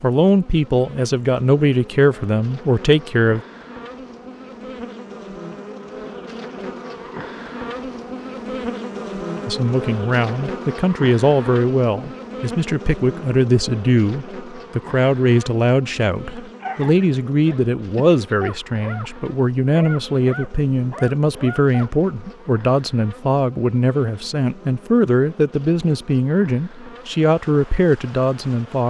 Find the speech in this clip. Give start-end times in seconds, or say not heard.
0.0-3.4, 9.4-28.8.